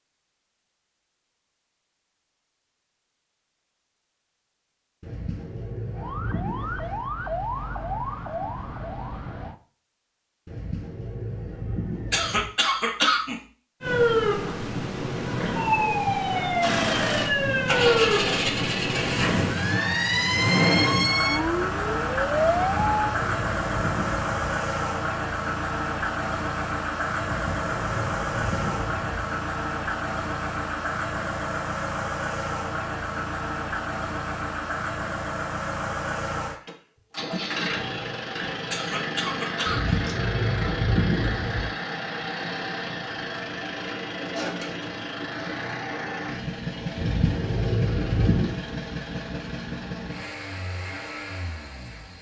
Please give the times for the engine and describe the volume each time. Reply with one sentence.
You can hear the engine from 16.6 to 52.1 s, getting quieter.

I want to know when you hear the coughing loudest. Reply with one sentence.
The volume of the coughing peaks at 13 seconds.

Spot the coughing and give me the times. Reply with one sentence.
You can hear the coughing from 12.1 to 13.3 s and from 38.7 to 40.0 s.